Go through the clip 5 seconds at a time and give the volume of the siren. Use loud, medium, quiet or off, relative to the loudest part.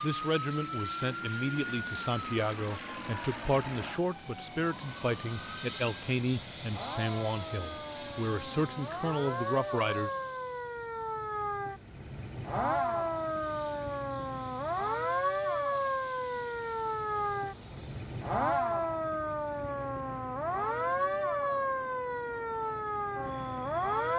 medium, medium, loud, loud, loud.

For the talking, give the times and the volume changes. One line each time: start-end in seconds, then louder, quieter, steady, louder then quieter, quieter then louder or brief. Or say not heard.
0.0-10.1 steady.